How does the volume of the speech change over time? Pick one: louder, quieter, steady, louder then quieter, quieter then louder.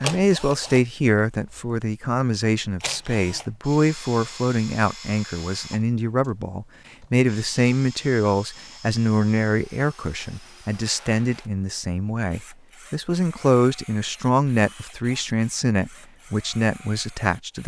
steady.